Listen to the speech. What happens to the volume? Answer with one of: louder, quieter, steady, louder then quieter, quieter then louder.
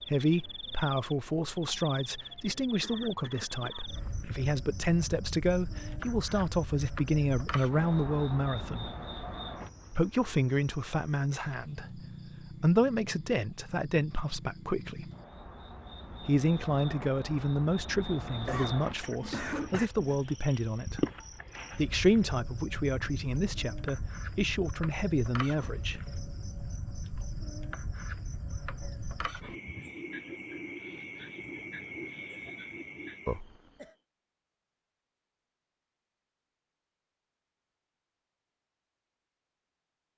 steady.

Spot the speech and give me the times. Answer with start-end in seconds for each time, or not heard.
0.1-8.9, 9.9-15.1, 16.2-21.1, 21.8-26.0.